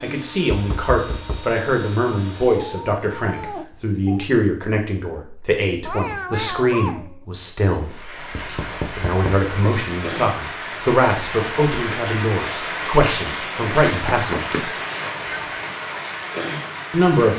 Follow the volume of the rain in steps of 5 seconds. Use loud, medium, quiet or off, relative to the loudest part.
off, medium, loud, loud.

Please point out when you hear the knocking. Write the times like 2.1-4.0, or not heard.
0.5-1.4, 8.3-9.5, 13.8-14.7.